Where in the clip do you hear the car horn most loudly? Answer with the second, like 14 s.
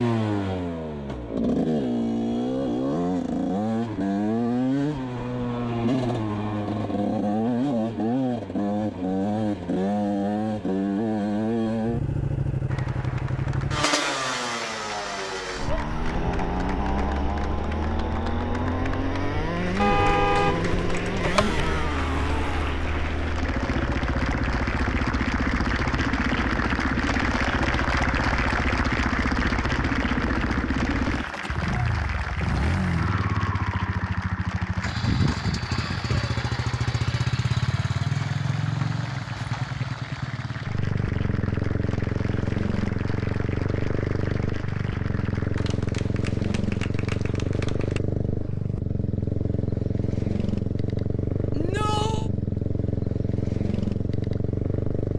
20 s.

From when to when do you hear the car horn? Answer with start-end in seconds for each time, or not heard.
19.8-21.8.